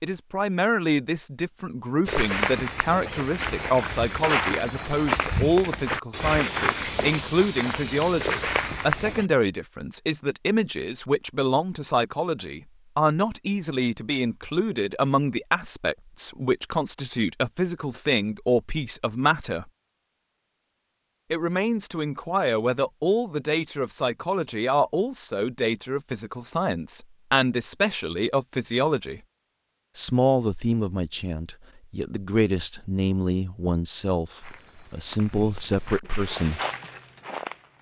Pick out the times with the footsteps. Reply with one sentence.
You can hear the footsteps from 2.0 to 9.2 s and from 34.4 to 37.7 s.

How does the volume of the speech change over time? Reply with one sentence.
The loudness of the speech stays about the same.